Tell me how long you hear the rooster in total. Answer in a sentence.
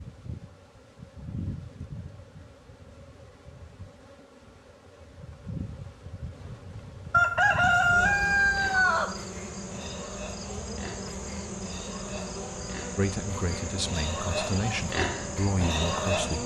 The rooster can be heard for 2 seconds in total.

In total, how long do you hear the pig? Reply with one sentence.
The pig can be heard for 9 seconds in total.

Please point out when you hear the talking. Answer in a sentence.
You can hear the talking from 12.9 to 16.4 s.